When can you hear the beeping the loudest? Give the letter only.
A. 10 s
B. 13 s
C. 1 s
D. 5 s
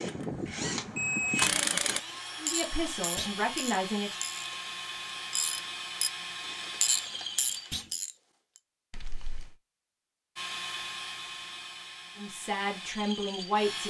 C.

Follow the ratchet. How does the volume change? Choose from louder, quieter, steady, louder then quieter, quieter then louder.
quieter then louder.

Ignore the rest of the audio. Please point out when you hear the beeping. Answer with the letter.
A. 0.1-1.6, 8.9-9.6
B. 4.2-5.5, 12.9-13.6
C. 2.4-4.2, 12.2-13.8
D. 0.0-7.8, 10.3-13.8
A.